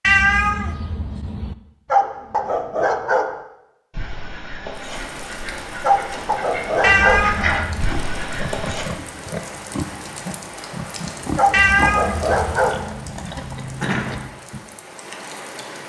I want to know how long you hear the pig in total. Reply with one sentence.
You can hear the pig for 7 seconds altogether.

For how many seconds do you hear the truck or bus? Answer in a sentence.
The truck or bus can't be heard in this clip.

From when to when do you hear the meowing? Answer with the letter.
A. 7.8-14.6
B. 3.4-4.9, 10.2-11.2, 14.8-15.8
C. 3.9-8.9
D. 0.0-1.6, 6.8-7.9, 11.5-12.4
D.